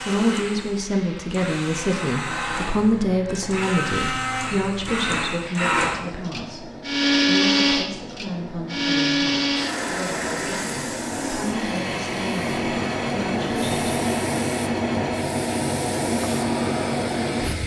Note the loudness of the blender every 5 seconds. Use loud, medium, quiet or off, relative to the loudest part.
medium, loud, medium, quiet.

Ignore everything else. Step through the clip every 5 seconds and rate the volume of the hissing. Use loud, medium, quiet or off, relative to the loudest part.
quiet, quiet, loud, loud.